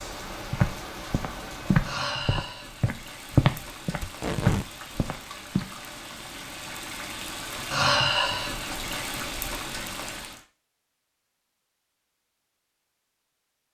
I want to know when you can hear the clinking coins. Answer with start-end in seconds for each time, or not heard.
not heard.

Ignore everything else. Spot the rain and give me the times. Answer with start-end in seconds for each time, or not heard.
0.0-10.4.